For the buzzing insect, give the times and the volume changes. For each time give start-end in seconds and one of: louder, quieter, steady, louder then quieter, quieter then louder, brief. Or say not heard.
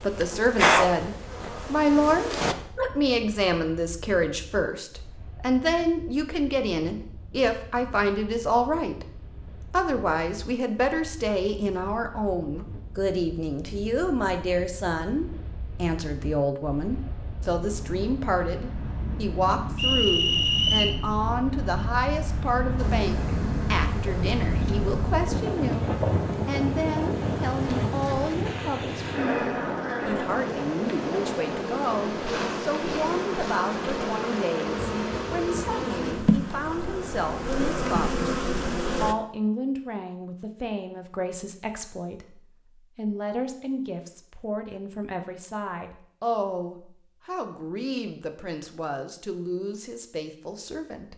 0.0-2.5 brief
22.8-39.1 louder.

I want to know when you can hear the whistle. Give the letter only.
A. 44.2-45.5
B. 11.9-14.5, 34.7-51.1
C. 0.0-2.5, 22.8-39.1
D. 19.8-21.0
D.